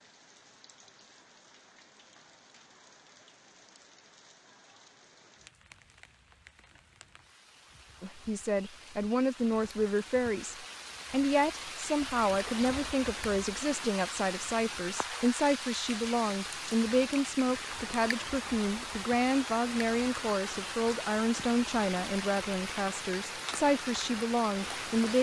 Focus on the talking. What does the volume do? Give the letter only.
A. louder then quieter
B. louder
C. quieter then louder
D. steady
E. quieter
D.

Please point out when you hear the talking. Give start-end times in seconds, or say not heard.
8.0-25.1.